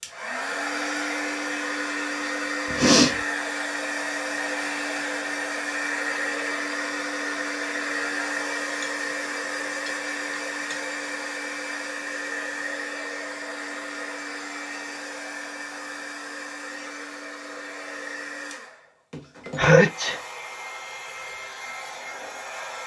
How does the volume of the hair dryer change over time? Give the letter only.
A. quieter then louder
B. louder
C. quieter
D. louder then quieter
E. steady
C.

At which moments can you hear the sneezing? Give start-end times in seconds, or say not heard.
2.7-3.1, 19.6-20.2.